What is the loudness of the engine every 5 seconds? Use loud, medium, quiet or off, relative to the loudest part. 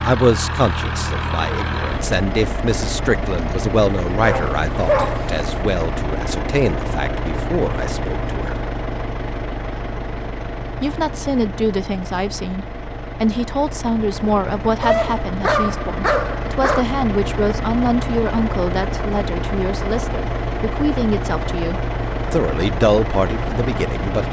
loud, loud, medium, loud, loud.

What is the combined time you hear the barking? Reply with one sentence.
You can hear the barking for 3 seconds altogether.